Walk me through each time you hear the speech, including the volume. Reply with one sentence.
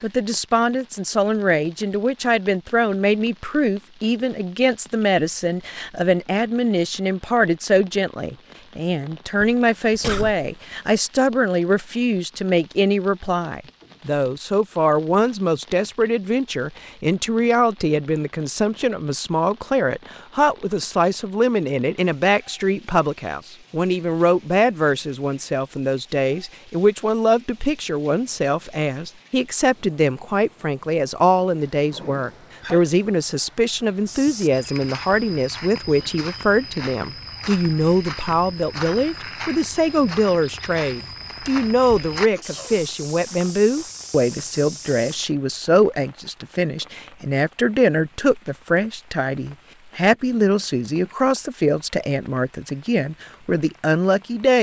The speech can be heard from 0.0 to 54.5 s, at a steady volume.